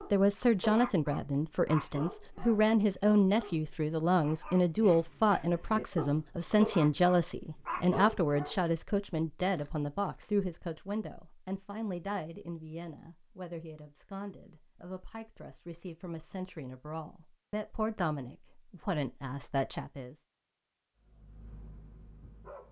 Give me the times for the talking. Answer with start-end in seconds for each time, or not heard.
0.1-20.1.